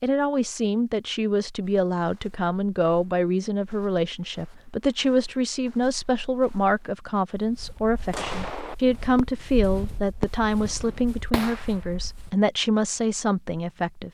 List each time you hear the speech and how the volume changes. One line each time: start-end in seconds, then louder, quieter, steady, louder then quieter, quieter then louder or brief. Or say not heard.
0.0-14.0 steady.